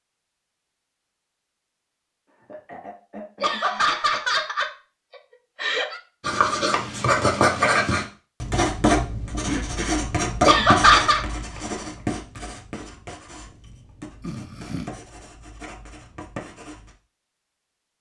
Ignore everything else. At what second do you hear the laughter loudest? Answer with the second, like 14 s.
11 s.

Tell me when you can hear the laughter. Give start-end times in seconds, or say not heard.
3.4-6.0, 10.4-11.2.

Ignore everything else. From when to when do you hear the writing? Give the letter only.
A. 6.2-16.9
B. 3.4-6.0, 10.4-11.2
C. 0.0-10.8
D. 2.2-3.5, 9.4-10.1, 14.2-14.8
A.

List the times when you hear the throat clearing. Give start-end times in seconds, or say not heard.
2.2-3.5, 9.4-10.1, 14.2-14.8.